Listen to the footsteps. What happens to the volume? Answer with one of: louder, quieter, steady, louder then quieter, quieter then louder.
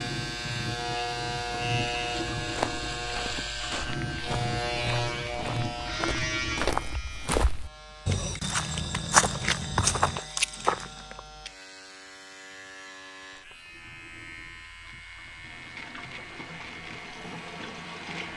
louder.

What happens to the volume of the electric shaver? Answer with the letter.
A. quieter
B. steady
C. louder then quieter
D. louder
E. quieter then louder
A.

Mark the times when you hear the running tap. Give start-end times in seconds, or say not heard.
0.0-7.3, 13.6-18.3.